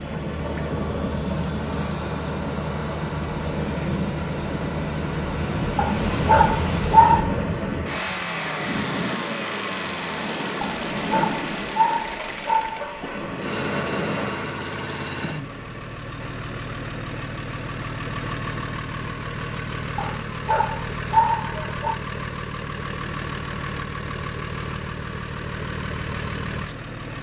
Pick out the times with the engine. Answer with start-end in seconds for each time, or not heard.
0.0-27.1.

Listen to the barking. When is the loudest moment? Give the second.
7 s.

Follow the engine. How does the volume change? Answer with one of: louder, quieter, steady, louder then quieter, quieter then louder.
steady.